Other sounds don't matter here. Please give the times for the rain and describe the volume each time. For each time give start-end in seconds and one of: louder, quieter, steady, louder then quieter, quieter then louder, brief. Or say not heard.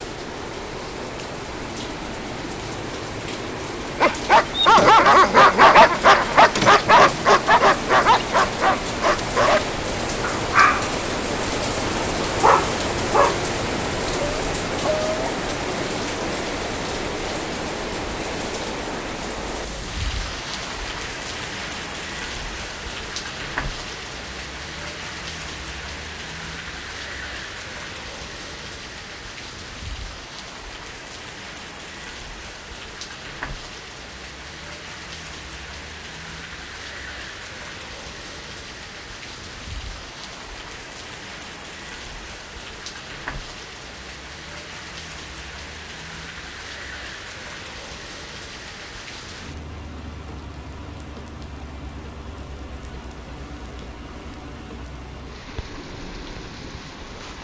0.0-57.3 quieter.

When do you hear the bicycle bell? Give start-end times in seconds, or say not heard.
not heard.